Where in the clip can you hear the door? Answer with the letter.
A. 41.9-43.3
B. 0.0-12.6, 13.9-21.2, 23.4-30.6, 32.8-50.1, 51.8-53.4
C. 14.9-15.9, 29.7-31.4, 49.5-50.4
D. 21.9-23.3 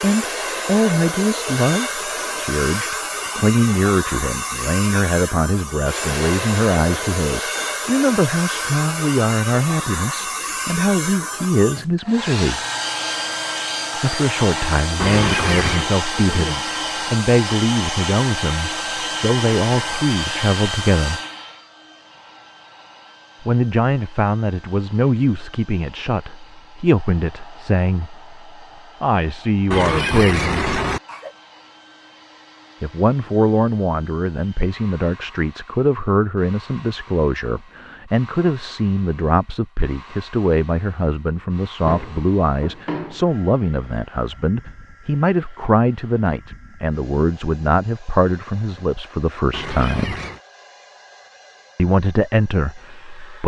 A.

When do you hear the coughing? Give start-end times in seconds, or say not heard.
14.9-15.9, 29.7-31.4, 49.5-50.4.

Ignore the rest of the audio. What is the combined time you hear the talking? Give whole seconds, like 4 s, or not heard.
46 s.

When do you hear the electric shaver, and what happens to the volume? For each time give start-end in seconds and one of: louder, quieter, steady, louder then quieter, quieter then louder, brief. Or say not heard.
not heard.